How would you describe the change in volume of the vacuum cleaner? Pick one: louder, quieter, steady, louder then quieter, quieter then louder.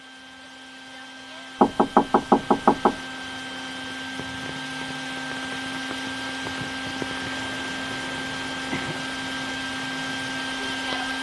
louder.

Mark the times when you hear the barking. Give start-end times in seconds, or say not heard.
not heard.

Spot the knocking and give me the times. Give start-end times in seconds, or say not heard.
1.6-3.0.